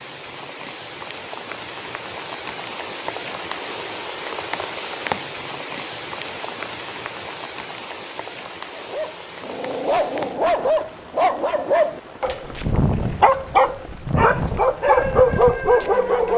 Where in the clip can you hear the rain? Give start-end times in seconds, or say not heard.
0.0-16.3.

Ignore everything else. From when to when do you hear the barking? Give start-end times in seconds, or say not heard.
8.8-16.3.